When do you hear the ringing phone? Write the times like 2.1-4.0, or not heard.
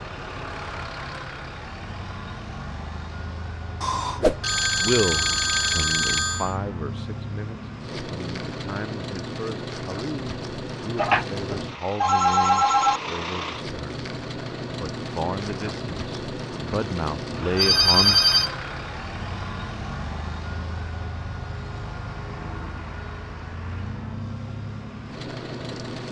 3.8-6.5, 10.9-13.0, 17.6-18.5.